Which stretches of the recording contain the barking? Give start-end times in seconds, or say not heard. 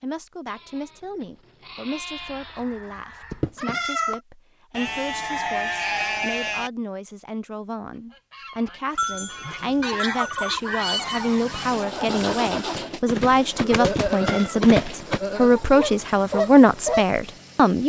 not heard.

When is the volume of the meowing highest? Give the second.
4 s.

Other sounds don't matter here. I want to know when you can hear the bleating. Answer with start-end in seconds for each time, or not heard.
0.5-2.6, 4.7-6.7, 8.9-10.6, 13.6-15.6.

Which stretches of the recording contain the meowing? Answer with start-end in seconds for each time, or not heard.
3.3-4.2, 13.8-14.6.